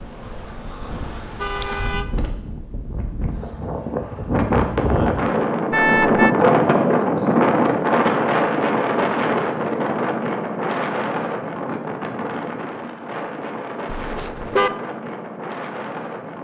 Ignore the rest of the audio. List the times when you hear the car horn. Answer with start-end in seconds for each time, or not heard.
1.4-2.4, 5.7-6.3, 13.8-14.7.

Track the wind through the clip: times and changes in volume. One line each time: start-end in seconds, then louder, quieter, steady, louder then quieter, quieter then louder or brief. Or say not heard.
0.0-16.3 louder then quieter.